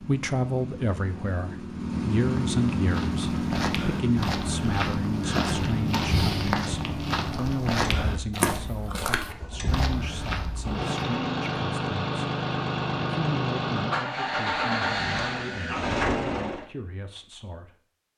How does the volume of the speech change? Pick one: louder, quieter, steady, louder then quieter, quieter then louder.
quieter.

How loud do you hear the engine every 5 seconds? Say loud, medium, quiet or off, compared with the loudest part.
loud, medium, loud, loud.